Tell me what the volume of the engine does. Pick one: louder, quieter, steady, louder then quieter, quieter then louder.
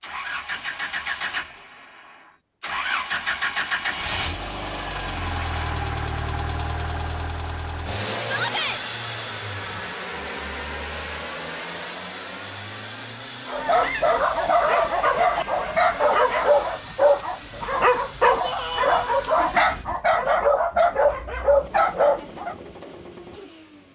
quieter.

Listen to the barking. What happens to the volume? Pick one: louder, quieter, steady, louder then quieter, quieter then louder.
steady.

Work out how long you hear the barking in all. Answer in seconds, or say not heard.
9 s.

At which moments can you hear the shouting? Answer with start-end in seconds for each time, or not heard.
8.2-8.8, 18.4-19.1.